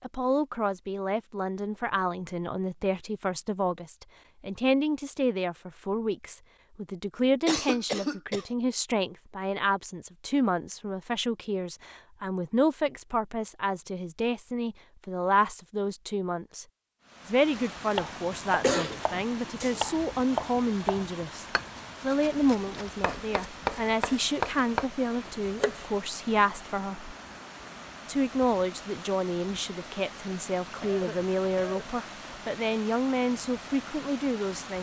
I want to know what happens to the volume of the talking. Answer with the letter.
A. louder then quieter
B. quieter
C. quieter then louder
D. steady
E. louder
D.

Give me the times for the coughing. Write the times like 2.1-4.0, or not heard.
7.5-8.4, 18.6-19.9, 30.6-31.8.